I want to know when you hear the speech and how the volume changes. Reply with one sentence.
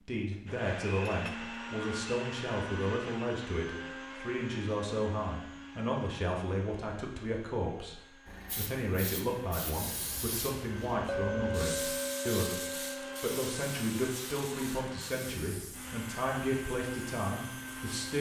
You can hear the speech from 0.1 to 18.1 s, at a steady volume.